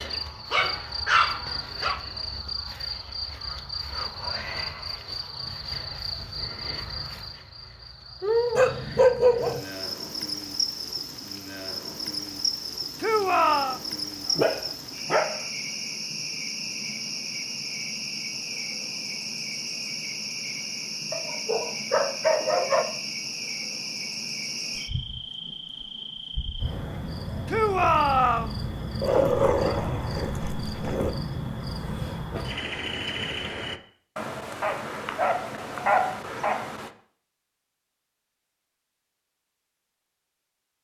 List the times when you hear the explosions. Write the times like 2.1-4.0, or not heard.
not heard.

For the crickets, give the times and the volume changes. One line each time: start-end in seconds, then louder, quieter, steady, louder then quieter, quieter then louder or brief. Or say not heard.
0.0-33.8 steady.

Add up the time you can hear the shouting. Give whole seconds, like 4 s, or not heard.
2 s.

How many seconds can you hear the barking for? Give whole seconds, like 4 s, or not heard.
10 s.